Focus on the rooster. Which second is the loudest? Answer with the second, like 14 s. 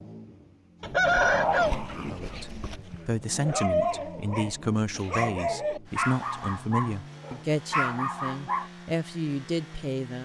1 s.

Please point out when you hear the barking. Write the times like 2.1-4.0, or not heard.
1.0-8.7.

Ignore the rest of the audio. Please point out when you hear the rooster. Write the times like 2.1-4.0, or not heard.
0.8-2.8.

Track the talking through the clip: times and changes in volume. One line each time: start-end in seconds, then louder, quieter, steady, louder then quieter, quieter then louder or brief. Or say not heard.
1.9-10.2 steady.